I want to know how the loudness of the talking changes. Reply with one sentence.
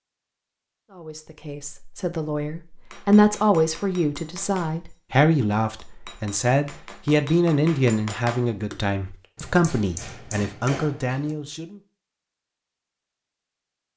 The volume of the talking stays about the same.